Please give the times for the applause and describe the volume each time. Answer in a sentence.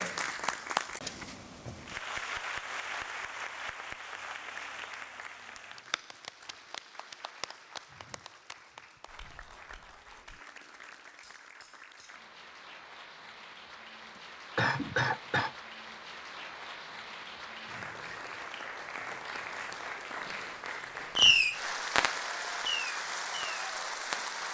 The applause can be heard from 0.0 to 24.5 s, getting quieter then louder.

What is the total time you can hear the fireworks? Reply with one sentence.
You can hear the fireworks for 3 seconds altogether.